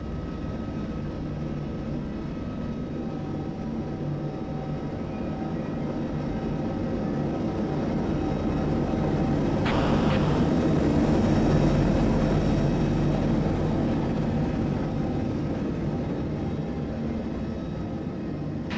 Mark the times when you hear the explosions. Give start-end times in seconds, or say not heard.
9.7-10.6.